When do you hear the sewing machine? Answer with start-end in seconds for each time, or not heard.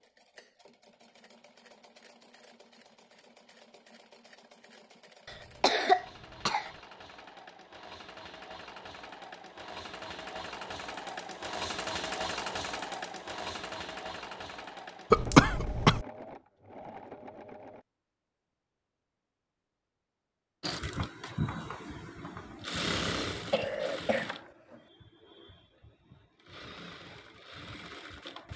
0.0-17.9, 20.6-28.5.